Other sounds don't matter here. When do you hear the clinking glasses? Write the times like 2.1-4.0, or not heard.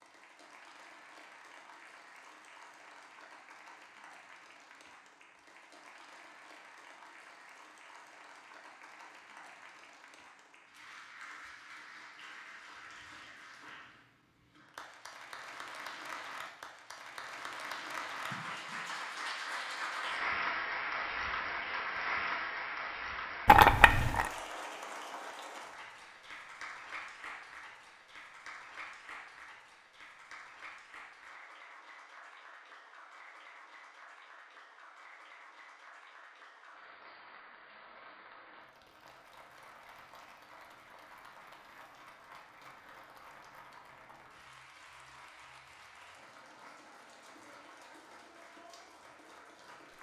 23.4-24.3.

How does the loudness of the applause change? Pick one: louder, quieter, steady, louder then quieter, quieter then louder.
louder then quieter.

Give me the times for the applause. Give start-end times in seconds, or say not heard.
0.0-49.9.